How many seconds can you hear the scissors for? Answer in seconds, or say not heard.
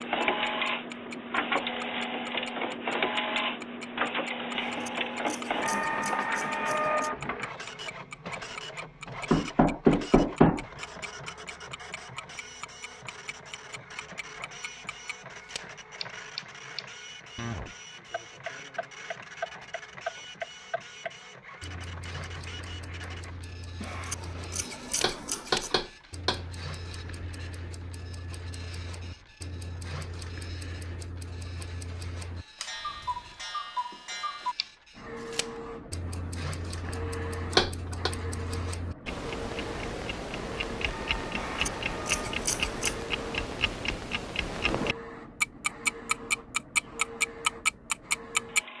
6 s.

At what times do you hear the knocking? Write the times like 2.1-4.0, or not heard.
9.3-10.7, 25.0-26.6, 37.5-38.1.